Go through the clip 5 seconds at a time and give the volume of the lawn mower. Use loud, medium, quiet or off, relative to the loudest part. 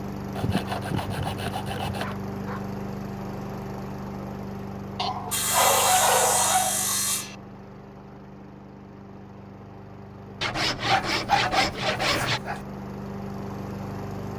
loud, medium, loud.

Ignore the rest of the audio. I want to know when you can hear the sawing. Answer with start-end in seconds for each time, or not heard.
0.3-2.1, 5.3-7.3, 10.4-12.4.